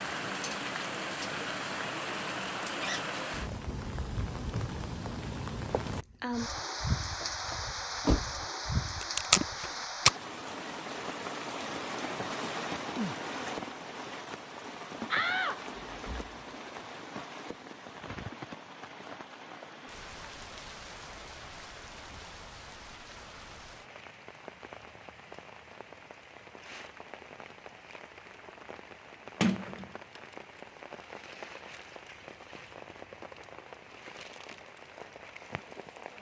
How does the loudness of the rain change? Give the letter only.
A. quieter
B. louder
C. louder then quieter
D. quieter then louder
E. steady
A.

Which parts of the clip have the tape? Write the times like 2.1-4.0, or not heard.
9.0-10.1.